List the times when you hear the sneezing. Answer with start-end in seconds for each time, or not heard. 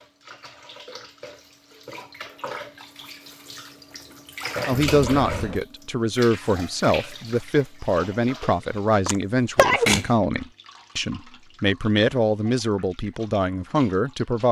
9.1-10.1.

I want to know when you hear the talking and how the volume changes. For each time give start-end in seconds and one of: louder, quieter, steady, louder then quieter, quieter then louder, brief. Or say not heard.
4.7-14.4 steady.